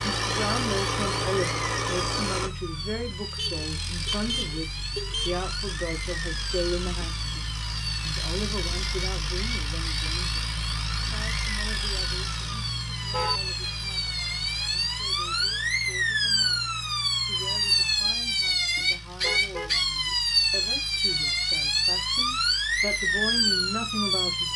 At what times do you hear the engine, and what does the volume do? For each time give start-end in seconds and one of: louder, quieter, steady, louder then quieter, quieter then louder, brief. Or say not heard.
0.0-24.5 quieter.